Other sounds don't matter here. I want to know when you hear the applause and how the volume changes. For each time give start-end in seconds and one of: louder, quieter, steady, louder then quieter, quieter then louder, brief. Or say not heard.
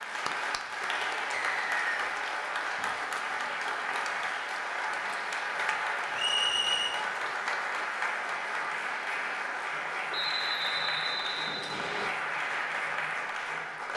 0.0-13.9 steady.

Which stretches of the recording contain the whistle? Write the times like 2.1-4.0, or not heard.
1.4-2.1, 6.2-7.0, 10.1-12.1.